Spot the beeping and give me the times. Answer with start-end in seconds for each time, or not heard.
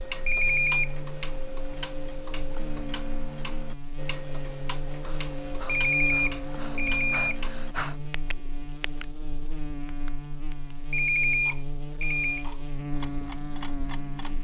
0.2-0.9, 5.7-7.3, 10.9-12.4.